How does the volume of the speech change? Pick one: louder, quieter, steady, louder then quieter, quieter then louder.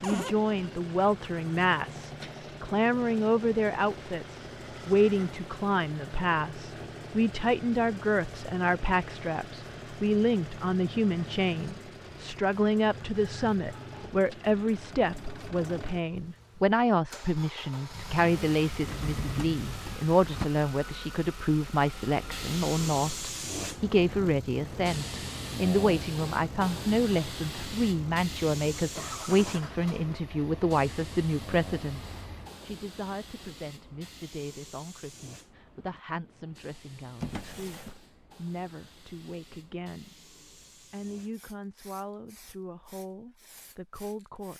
quieter.